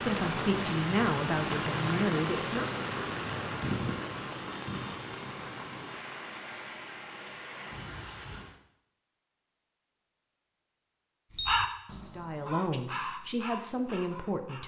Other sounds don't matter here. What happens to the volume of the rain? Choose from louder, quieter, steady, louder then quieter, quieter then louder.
quieter.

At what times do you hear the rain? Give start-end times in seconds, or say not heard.
0.0-8.6.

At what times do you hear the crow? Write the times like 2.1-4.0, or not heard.
11.3-14.6.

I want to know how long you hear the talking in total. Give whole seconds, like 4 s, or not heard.
5 s.